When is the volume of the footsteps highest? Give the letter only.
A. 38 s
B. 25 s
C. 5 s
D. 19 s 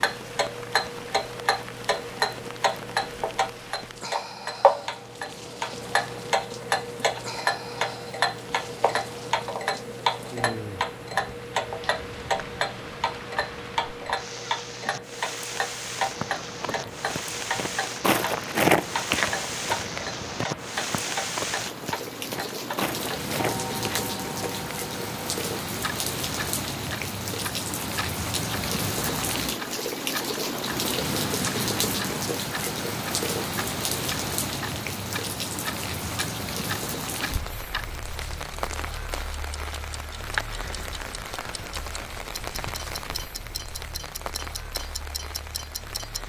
D.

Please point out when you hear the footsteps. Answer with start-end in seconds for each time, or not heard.
15.9-24.8.